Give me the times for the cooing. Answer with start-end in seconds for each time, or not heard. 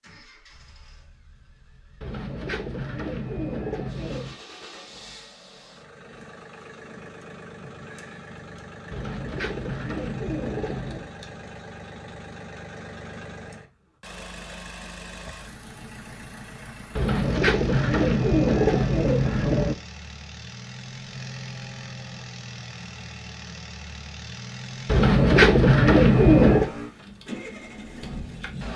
2.0-4.4, 8.9-11.1, 16.9-19.8, 24.9-26.7.